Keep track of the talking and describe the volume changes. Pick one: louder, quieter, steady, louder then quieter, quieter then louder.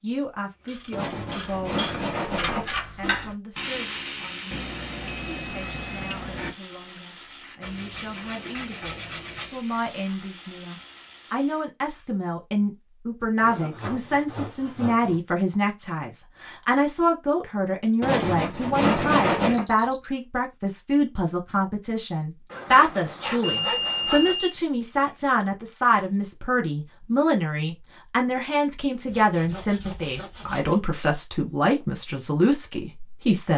louder.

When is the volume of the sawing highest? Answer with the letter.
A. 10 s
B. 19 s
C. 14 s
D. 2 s
B.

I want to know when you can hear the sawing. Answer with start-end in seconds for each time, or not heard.
0.9-2.8, 7.6-9.6, 13.4-15.2, 18.0-19.6, 22.5-24.4, 29.1-30.9.